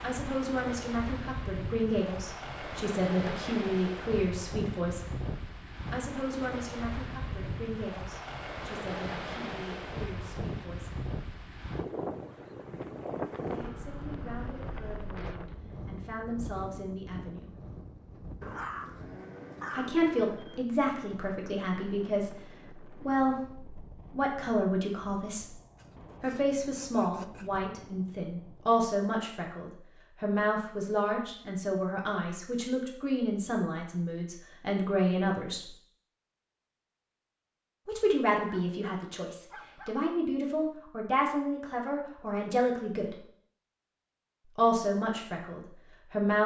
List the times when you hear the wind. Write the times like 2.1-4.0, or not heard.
0.0-28.9.